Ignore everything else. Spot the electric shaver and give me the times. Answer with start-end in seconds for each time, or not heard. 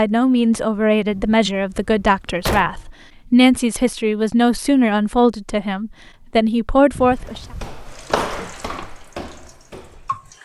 not heard.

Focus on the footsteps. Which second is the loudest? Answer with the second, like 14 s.
8 s.